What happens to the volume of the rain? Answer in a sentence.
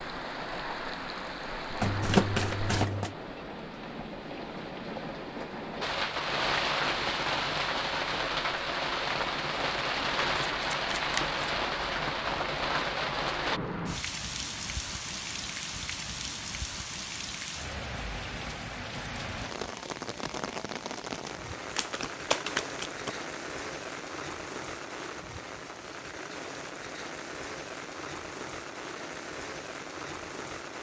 The loudness of the rain goes up, then down.